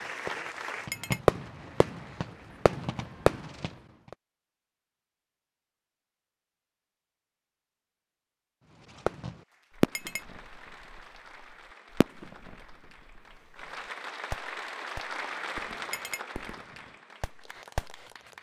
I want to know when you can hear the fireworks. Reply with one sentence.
The fireworks can be heard from 0.0 to 4.2 s, from 9.1 to 13.6 s and from 14.3 to 18.0 s.